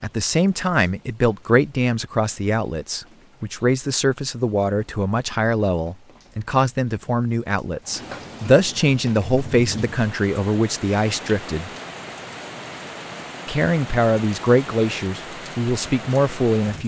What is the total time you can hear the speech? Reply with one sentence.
You can hear the speech for 15 seconds altogether.